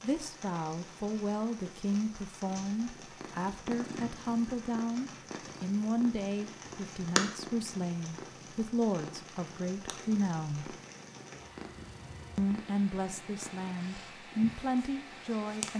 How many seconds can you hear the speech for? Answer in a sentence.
You can hear the speech for 14 seconds altogether.